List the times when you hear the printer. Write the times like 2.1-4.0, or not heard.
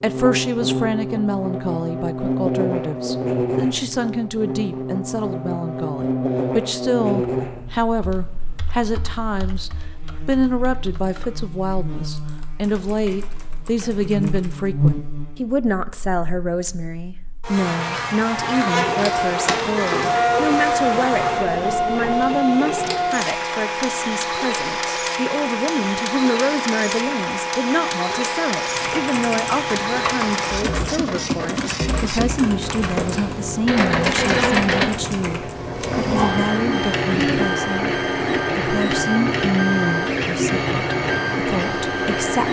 18.5-42.4.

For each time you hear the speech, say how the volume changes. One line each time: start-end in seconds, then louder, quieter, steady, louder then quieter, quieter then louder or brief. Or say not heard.
0.0-42.4 steady.